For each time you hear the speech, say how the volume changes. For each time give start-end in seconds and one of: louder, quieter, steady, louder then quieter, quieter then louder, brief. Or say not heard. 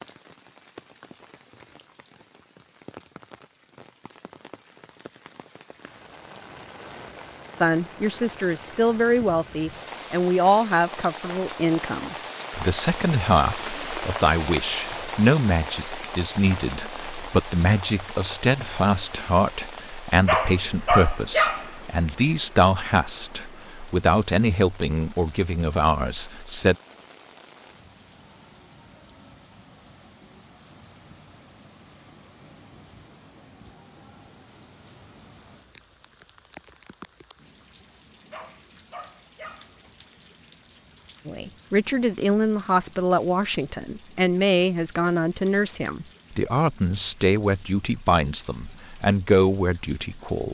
7.6-26.8 steady
41.2-50.4 steady.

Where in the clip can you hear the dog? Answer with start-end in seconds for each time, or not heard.
20.2-22.1, 38.3-40.2.